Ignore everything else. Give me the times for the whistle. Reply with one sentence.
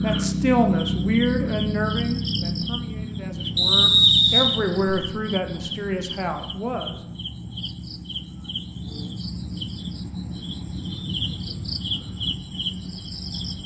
You can hear the whistle from 3.5 to 5.0 s.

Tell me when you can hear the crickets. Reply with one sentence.
The crickets can be heard from 0.0 to 13.6 s.